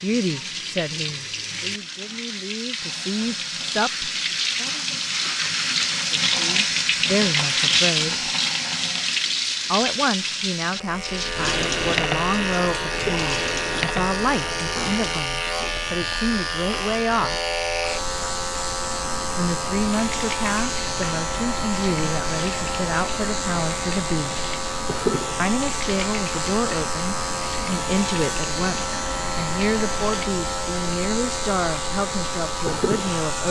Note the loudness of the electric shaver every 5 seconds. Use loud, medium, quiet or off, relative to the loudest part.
off, off, loud, loud, loud, loud, loud.